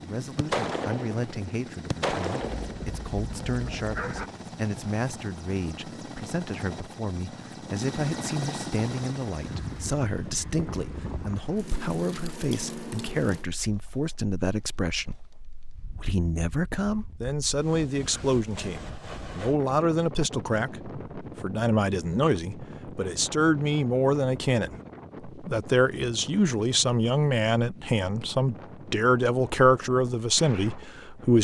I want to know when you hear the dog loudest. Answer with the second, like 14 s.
4 s.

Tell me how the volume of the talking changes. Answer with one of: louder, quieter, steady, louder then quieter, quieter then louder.
louder.